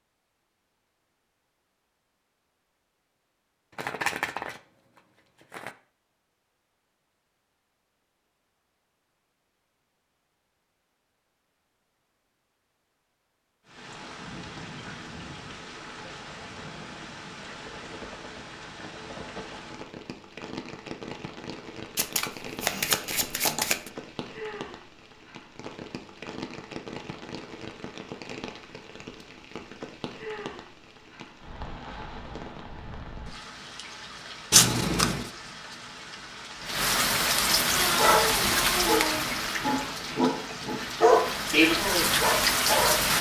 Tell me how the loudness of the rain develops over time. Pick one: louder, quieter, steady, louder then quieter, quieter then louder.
louder.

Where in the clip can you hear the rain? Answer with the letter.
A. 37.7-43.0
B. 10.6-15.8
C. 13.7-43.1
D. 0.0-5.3
C.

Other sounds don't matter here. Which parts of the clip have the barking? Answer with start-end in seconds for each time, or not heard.
37.7-43.0.